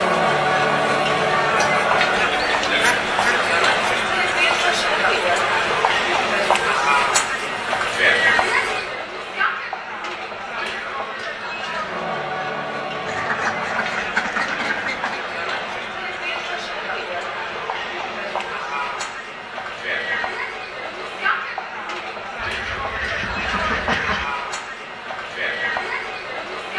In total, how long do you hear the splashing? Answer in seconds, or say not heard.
not heard.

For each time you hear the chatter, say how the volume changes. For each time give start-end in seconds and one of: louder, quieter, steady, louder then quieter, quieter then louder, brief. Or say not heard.
0.0-26.7 quieter.